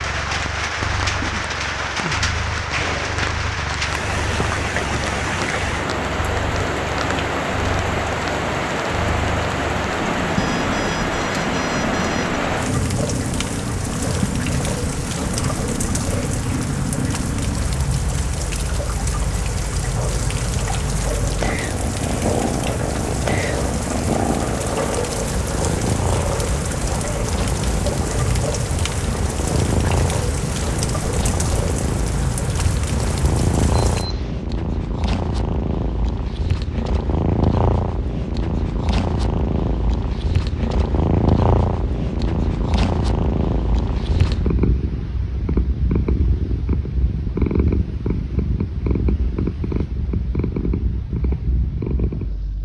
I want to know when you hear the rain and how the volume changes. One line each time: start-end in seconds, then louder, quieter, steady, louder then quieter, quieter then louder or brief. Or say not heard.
0.0-34.0 steady.